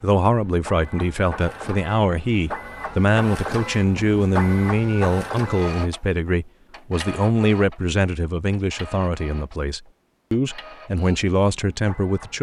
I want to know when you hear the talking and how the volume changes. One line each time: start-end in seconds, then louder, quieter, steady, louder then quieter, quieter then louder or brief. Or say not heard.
0.0-12.3 steady.